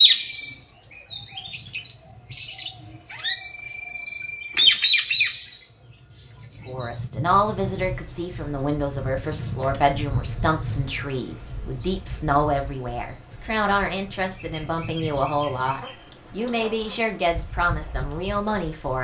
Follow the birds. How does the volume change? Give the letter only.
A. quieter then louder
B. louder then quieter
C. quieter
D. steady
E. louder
C.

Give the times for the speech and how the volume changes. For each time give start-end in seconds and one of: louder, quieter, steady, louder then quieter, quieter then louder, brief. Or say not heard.
6.7-18.9 steady.